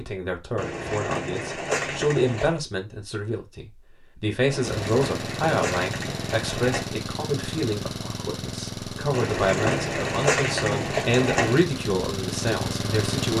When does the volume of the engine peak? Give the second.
13 s.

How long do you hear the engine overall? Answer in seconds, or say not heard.
9 s.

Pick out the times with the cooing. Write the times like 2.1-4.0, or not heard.
0.6-2.6, 4.5-7.0, 9.1-11.6.